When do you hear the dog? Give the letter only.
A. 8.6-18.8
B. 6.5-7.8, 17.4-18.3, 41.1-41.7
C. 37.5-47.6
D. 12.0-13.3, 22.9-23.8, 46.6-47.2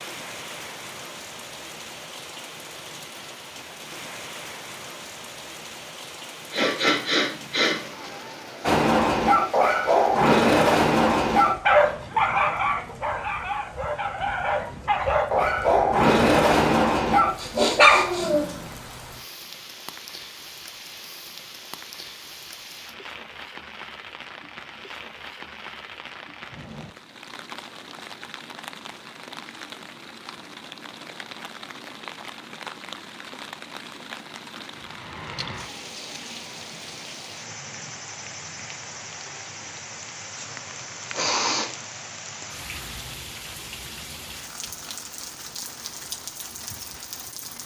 A.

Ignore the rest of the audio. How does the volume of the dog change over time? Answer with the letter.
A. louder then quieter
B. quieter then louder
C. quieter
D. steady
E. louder
B.